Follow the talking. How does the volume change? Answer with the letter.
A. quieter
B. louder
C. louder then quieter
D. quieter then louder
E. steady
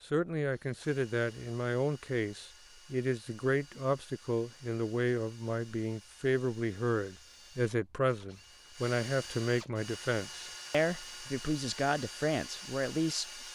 E.